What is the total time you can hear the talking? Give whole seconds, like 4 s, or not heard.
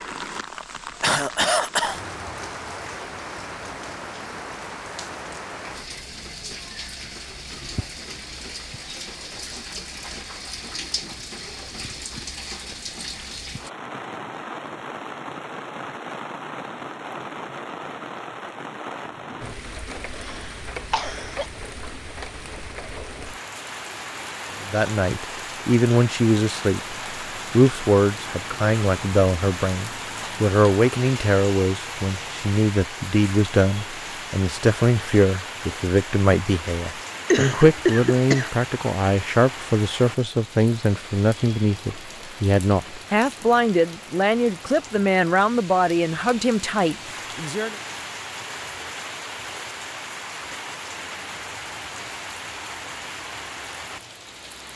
23 s.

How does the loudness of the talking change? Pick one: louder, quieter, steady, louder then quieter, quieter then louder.
steady.